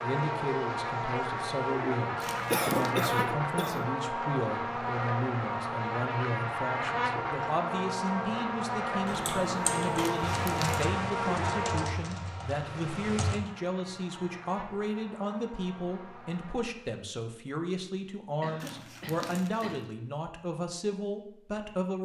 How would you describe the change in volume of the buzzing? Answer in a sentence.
The volume of the buzzing goes down.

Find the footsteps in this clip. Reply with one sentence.
The footsteps can't be heard in this clip.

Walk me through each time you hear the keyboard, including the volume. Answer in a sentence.
You can hear the keyboard from 9.1 to 13.4 s, getting quieter.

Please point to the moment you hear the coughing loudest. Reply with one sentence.
The volume of the coughing peaks at 3 seconds.